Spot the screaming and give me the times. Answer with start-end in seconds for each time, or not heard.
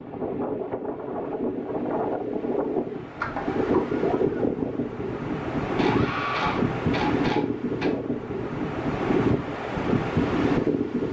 5.8-6.7.